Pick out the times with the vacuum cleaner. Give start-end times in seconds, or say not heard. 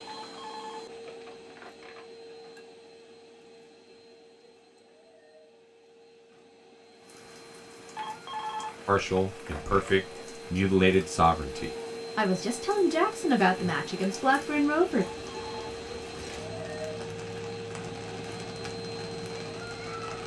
0.0-20.2.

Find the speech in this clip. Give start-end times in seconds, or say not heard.
8.8-15.1.